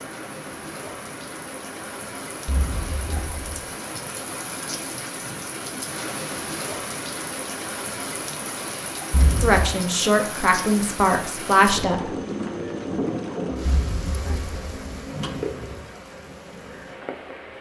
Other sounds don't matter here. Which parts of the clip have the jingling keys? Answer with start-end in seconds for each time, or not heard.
2.5-3.6, 9.1-9.8, 13.7-15.4.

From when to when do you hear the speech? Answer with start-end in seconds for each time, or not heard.
9.4-12.1.